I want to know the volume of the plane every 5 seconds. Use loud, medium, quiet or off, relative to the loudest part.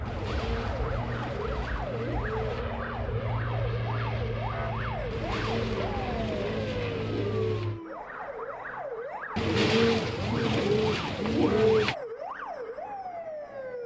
loud, loud, off.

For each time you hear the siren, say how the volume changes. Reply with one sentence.
The siren can be heard from 0.0 to 13.8 s, at a steady volume.